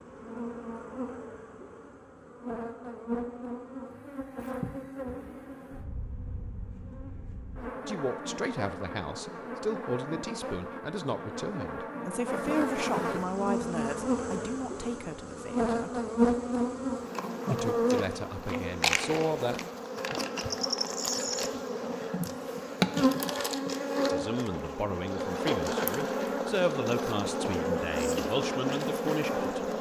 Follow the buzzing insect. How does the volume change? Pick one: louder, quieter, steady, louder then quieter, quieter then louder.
louder.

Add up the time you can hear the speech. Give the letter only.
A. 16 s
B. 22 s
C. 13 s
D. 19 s
A.